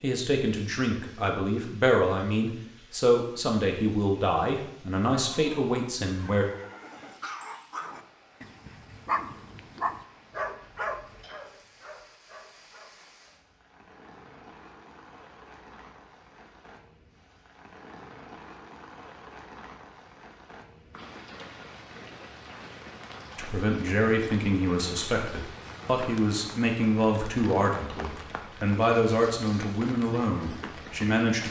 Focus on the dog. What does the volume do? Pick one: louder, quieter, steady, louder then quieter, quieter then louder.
louder then quieter.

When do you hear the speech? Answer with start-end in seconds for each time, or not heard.
0.0-6.5, 23.4-31.4.